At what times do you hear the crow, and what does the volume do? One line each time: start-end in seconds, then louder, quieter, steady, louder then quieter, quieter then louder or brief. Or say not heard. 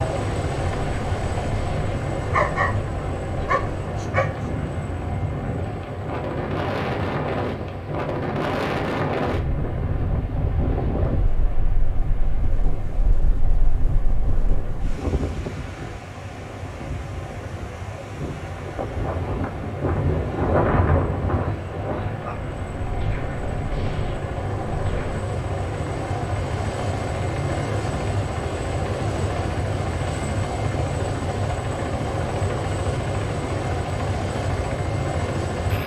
not heard.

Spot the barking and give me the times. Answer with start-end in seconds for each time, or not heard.
2.3-2.8, 3.4-4.2.